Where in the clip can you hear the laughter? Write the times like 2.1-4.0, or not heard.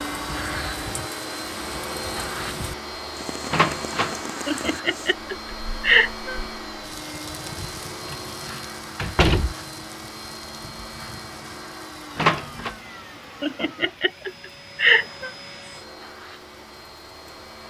4.5-6.4, 13.4-15.3.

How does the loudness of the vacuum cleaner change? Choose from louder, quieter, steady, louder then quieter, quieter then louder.
quieter.